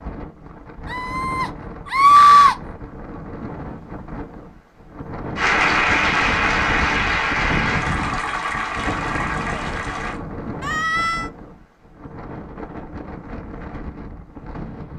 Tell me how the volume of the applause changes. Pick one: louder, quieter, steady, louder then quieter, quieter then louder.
quieter.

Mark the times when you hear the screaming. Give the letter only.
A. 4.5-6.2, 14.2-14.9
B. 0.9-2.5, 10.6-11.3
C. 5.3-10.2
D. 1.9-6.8
B.